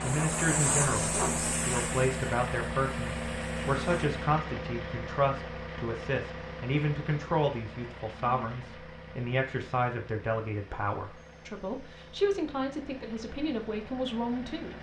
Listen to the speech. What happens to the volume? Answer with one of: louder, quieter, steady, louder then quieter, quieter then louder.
steady.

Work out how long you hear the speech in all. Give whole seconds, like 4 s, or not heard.
15 s.